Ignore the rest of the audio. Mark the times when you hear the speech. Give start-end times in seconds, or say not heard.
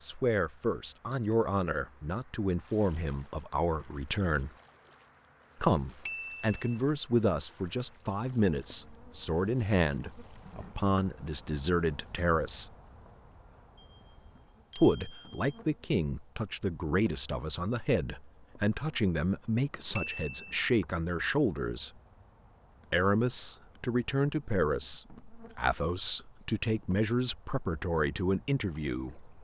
0.0-4.5, 5.6-12.7, 14.8-21.9, 22.9-29.3.